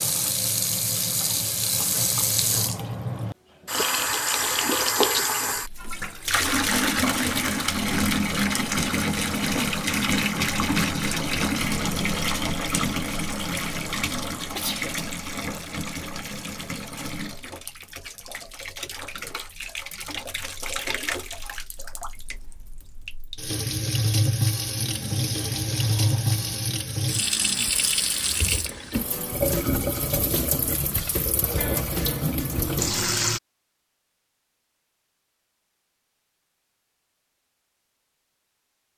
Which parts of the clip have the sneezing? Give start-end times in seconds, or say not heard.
14.5-14.9.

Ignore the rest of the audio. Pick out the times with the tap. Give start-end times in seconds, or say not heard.
0.0-33.4.